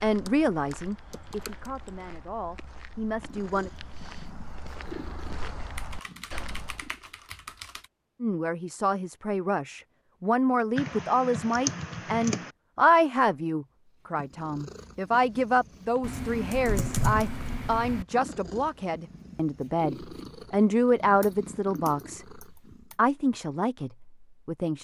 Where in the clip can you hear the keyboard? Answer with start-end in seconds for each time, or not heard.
0.2-2.1, 5.8-7.8, 10.8-12.5, 16.0-18.1, 21.2-22.9.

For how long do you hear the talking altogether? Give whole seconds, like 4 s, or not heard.
20 s.